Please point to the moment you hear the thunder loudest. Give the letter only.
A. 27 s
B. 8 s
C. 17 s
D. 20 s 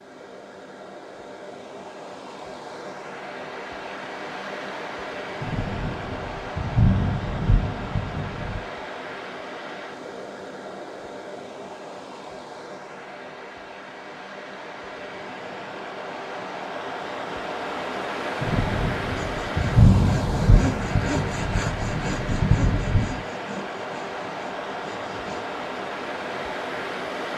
D.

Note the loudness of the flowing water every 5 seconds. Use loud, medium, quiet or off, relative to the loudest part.
medium, loud, medium, loud, loud, loud.